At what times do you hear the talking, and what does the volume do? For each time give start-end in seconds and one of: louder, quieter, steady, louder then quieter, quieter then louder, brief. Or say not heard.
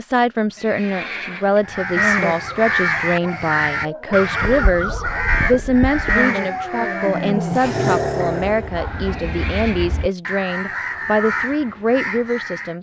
0.0-12.7 steady.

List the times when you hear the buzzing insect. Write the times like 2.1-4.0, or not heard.
not heard.